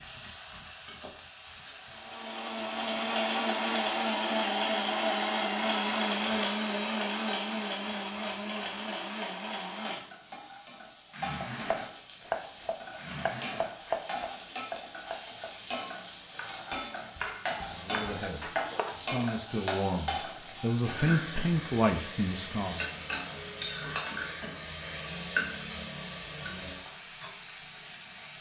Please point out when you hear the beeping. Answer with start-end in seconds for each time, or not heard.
not heard.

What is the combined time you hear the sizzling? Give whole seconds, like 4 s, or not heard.
28 s.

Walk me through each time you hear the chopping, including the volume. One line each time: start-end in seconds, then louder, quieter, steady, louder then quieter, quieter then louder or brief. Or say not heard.
11.4-19.2 quieter.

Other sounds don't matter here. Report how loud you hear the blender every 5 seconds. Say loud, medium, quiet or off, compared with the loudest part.
loud, loud, medium, off, off, off.